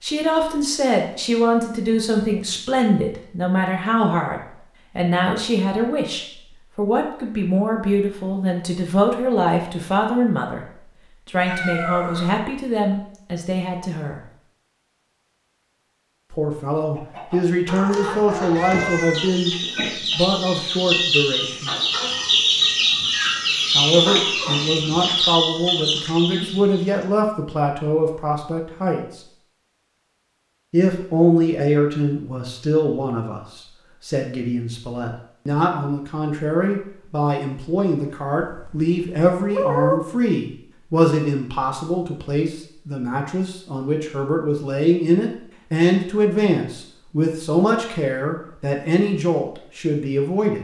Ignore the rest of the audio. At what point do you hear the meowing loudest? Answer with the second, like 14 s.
40 s.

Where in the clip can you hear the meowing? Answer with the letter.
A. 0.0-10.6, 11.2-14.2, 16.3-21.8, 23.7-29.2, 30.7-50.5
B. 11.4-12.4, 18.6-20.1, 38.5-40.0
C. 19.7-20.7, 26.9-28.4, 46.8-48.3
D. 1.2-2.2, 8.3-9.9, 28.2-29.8
B.